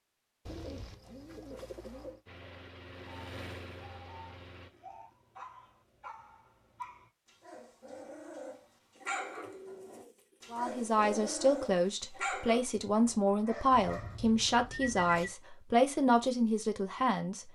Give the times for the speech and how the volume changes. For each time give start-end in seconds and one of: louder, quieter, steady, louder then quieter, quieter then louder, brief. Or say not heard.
10.5-17.5 steady.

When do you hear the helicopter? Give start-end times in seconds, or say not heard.
2.2-4.7.